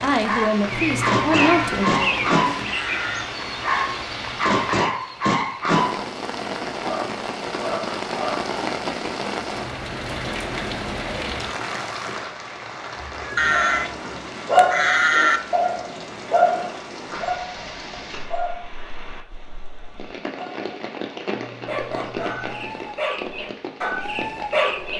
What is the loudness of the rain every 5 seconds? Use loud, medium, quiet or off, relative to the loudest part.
loud, loud, loud, medium, medium.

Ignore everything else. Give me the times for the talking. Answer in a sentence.
You can hear the talking from 0.0 to 2.0 s.